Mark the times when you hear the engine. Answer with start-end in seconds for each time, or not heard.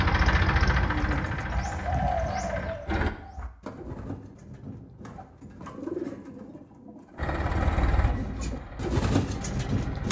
0.0-3.1, 7.2-10.0.